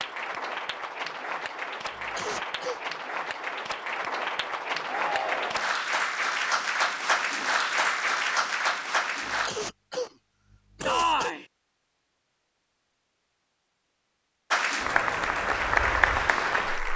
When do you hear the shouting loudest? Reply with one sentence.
The loudest moment of the shouting is at 11 seconds.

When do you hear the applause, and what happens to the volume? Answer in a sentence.
You can hear the applause from 0.0 to 9.5 s, getting louder; and briefly from 14.5 to 16.9 s.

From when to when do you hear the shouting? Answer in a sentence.
The shouting can be heard from 4.8 to 5.8 s and from 10.8 to 11.4 s.